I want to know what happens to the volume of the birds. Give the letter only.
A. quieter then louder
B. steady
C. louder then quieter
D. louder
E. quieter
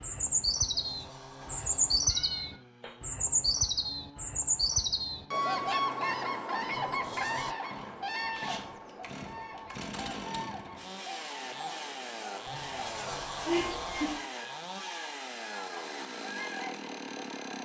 E.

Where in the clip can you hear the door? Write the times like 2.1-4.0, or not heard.
0.6-2.0, 6.7-7.5, 12.4-14.2.